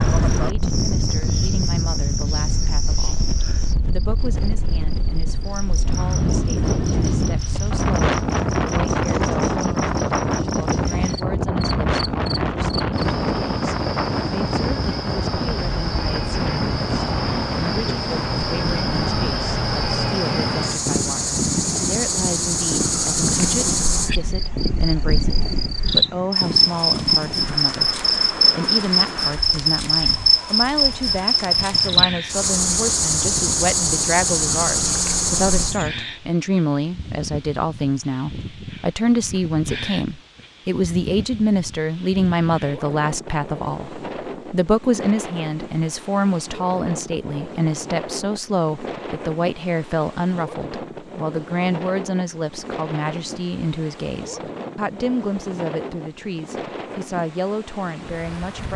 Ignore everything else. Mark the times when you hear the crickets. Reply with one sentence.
The crickets can be heard from 0.0 to 35.9 s.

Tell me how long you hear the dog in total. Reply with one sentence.
The dog can't be heard in this clip.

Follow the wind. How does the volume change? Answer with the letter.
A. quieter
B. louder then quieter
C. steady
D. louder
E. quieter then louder
A.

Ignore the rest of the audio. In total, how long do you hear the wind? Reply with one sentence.
You can hear the wind for 59 seconds altogether.